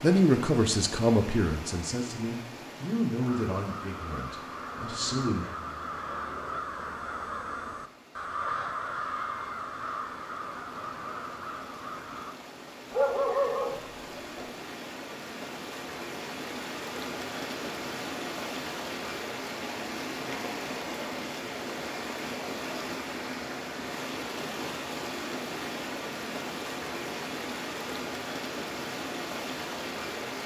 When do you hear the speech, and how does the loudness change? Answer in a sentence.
The speech can be heard from 0.0 to 5.5 s, getting quieter.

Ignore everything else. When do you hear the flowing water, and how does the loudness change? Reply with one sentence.
The flowing water can be heard from 0.0 to 30.4 s, getting quieter then louder.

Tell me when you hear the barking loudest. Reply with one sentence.
The volume of the barking peaks at 13 seconds.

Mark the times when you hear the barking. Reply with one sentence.
The barking can be heard from 12.9 to 14.4 s.